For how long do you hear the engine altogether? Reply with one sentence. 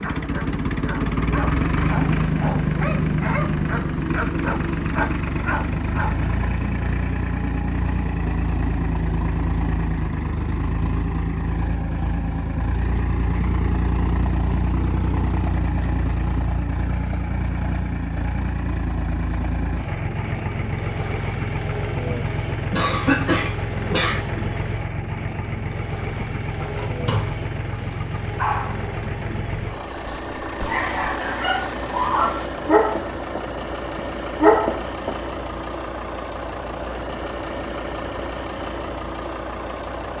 You can hear the engine for 40 seconds altogether.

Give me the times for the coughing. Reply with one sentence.
The coughing can be heard from 22.7 to 24.2 s.